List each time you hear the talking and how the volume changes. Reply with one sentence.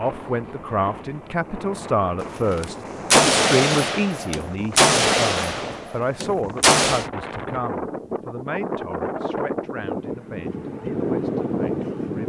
You can hear the talking from 0.0 to 12.2 s, getting quieter.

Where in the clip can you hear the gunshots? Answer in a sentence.
The gunshots can be heard from 2.2 to 7.0 s.